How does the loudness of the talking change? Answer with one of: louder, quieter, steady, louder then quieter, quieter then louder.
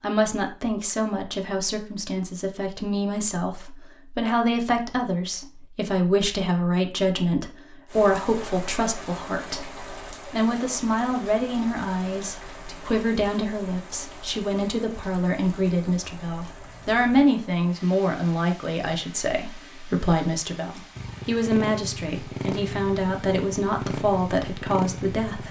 steady.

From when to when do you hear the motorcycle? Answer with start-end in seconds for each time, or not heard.
20.9-25.4.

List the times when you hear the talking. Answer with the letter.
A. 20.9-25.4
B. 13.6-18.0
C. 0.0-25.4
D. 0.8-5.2
C.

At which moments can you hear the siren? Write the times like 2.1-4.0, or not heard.
not heard.